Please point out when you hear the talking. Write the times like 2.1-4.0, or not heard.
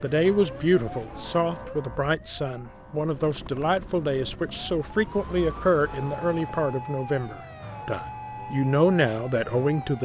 0.0-9.9.